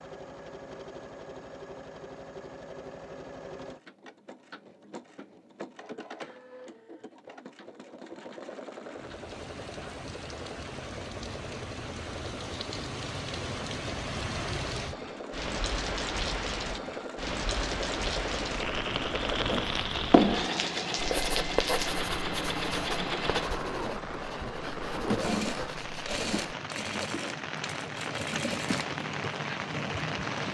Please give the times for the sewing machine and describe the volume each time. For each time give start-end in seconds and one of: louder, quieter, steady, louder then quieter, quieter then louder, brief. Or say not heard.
0.0-30.4 louder.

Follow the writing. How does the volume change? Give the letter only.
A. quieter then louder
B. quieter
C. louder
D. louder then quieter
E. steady
B.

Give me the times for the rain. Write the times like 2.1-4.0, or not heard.
8.8-30.4.